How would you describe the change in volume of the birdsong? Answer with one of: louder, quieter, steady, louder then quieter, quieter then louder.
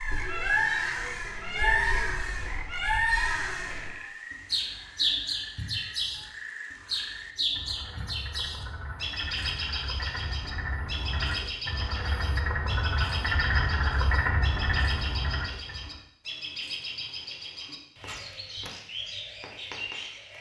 quieter.